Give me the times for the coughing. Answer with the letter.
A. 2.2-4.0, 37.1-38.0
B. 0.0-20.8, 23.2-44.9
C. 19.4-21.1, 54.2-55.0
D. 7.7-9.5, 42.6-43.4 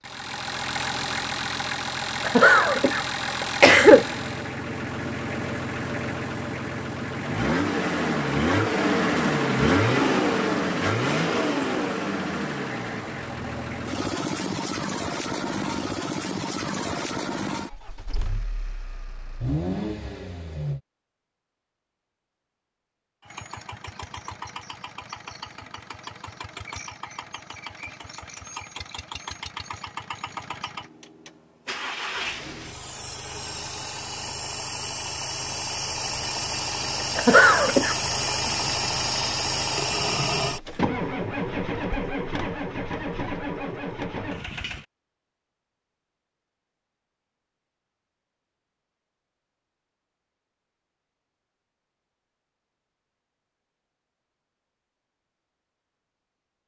A.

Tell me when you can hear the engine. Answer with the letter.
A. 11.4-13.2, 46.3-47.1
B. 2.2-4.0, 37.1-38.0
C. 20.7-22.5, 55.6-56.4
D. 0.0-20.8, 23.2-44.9
D.